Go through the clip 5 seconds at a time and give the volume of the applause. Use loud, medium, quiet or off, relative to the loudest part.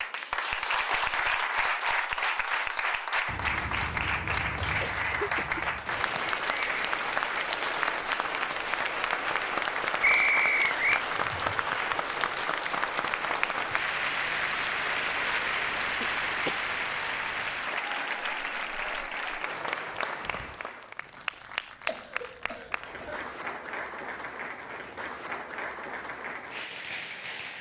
loud, loud, loud, loud, medium, medium.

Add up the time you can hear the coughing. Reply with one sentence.
The coughing can be heard for 5 seconds in total.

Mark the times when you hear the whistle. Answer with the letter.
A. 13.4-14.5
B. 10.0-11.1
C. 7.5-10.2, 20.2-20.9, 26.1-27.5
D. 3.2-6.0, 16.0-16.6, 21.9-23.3
B.